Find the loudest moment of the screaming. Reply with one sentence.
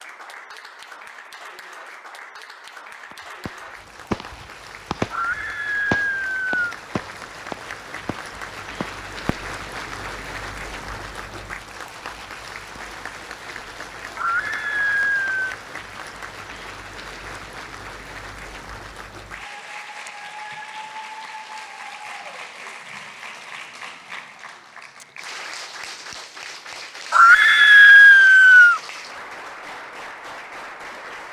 The volume of the screaming peaks at 28 seconds.